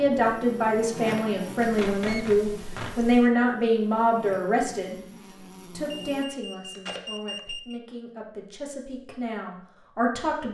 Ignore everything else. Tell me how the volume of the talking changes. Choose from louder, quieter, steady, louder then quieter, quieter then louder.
quieter then louder.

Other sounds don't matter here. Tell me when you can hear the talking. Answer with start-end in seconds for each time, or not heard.
0.0-5.0, 5.7-10.4.